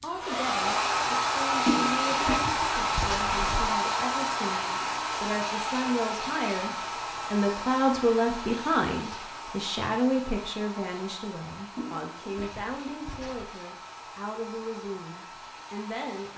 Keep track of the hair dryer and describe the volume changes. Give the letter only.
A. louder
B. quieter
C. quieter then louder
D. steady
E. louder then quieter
B.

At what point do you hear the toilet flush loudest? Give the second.
2 s.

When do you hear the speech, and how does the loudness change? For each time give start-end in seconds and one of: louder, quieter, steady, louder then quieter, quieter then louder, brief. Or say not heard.
0.0-16.3 louder then quieter.